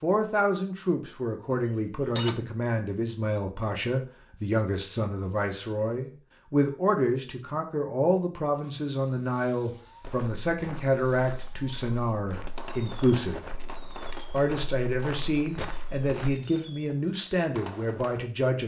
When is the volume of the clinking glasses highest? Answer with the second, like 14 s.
2 s.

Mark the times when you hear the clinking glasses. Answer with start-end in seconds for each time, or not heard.
1.5-2.4, 13.4-14.3.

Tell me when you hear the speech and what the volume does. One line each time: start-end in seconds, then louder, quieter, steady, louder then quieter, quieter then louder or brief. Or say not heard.
0.0-13.4 steady
14.3-18.6 steady.